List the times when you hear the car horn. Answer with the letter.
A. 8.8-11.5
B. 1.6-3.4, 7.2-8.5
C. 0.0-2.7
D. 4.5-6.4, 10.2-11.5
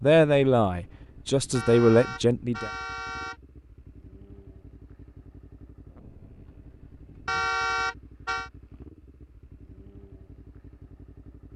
B.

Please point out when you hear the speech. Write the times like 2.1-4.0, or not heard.
0.0-2.7.